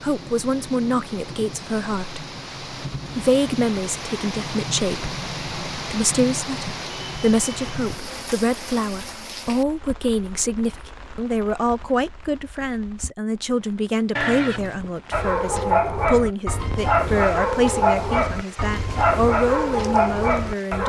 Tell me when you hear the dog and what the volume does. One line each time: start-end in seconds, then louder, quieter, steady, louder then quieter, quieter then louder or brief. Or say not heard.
15.1-20.8 steady.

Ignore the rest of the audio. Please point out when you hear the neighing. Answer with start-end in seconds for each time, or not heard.
14.2-14.8.